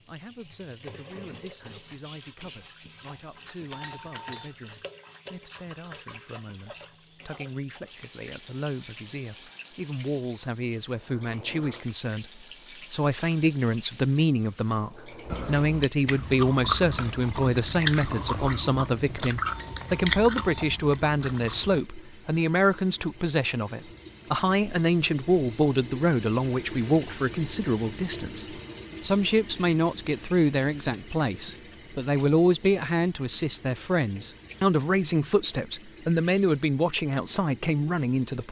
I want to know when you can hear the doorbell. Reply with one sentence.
You can hear the doorbell from 3.7 to 4.5 s and from 19.4 to 20.8 s.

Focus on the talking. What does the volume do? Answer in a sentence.
The volume of the talking goes up.